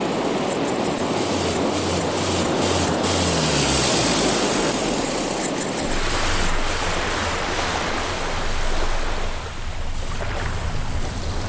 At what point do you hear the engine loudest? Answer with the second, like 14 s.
4 s.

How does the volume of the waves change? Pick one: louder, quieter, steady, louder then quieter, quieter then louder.
quieter.